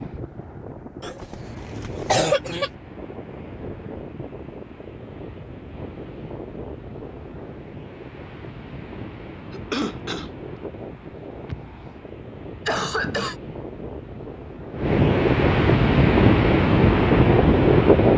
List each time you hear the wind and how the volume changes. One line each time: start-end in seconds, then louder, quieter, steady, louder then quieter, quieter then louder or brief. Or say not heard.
0.0-18.1 louder.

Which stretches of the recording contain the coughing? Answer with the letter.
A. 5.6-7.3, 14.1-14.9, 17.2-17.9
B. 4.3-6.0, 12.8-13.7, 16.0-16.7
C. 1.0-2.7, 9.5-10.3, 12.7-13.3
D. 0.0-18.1
C.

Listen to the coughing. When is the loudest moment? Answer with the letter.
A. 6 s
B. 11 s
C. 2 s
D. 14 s
C.